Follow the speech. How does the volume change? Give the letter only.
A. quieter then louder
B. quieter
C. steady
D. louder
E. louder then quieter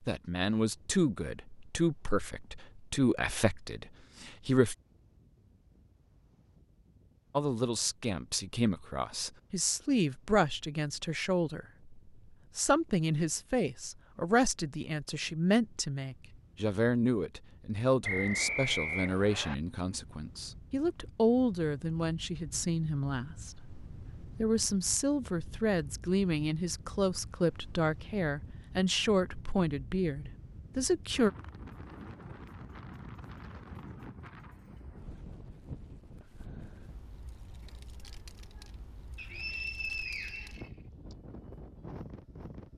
C.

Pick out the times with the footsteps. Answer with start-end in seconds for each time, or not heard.
not heard.